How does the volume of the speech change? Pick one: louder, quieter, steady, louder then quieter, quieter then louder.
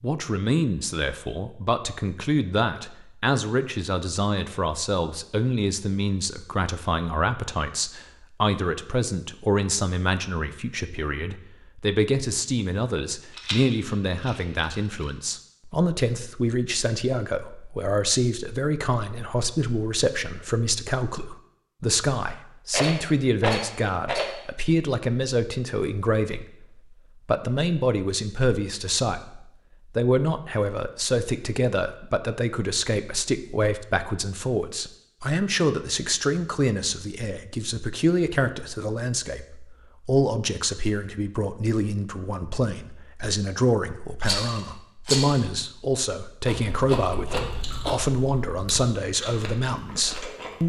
steady.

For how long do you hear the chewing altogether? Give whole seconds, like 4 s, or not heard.
4 s.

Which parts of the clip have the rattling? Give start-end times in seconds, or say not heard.
13.3-15.1, 22.7-24.4, 44.2-45.4.